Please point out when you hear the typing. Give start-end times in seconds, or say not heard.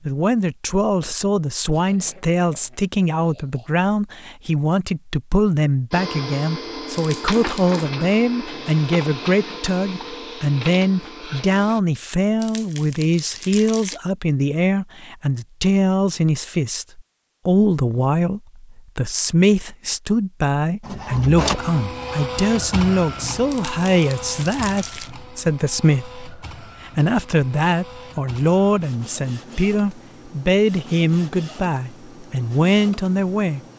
not heard.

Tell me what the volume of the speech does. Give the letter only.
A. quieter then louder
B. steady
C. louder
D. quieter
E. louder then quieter
B.